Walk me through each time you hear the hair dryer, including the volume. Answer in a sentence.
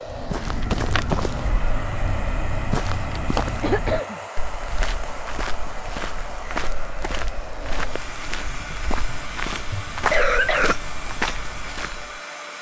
The hair dryer can be heard from 0.0 to 12.5 s, at a steady volume.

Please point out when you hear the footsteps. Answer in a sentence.
The footsteps can be heard from 0.1 to 12.2 s.